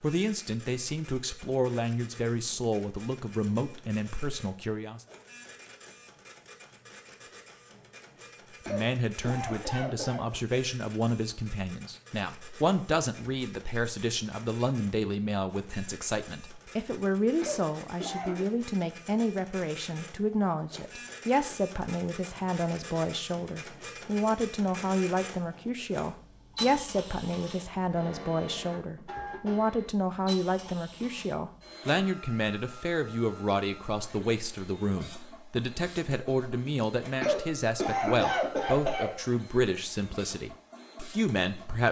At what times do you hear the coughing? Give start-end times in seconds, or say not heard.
8.7-10.2, 17.4-18.4, 37.2-39.1.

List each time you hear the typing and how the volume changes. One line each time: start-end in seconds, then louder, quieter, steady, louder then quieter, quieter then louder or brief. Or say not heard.
not heard.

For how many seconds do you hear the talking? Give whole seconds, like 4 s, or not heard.
38 s.